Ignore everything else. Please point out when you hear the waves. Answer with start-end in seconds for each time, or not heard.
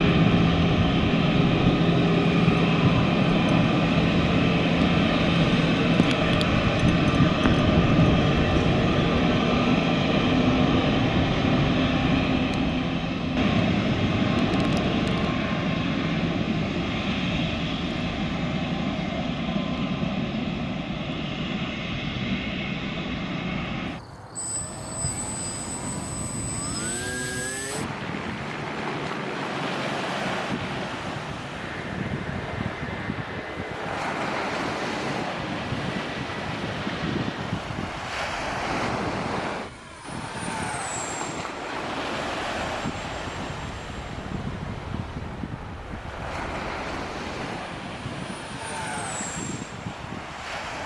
24.4-50.8.